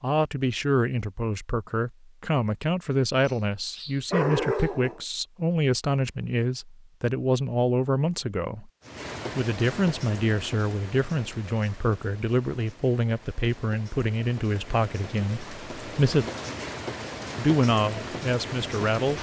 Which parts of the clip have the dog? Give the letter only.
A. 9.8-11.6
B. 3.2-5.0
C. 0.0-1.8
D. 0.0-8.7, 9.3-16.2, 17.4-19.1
B.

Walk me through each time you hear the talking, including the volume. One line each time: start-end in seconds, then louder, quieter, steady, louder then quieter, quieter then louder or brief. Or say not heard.
0.0-8.7 steady
9.3-16.2 steady
17.4-19.1 brief.